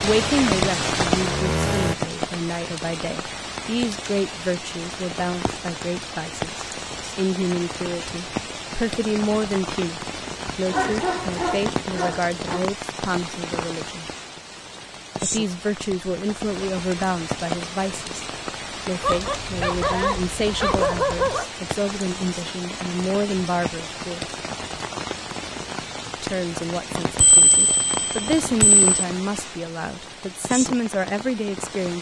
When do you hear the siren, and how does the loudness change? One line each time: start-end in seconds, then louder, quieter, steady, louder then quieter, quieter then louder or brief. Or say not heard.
not heard.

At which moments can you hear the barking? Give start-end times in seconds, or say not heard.
10.5-12.6, 19.0-21.4.